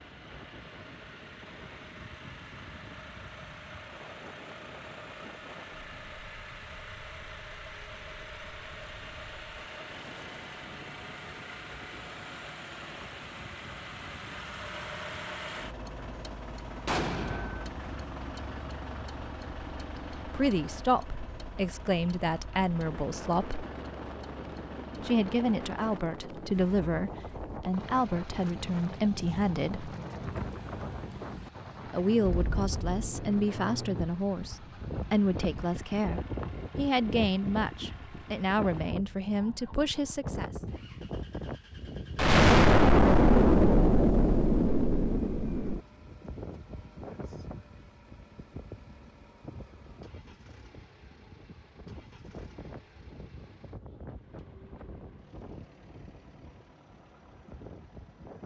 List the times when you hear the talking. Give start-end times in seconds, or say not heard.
19.8-23.6, 25.0-29.9, 31.9-40.5.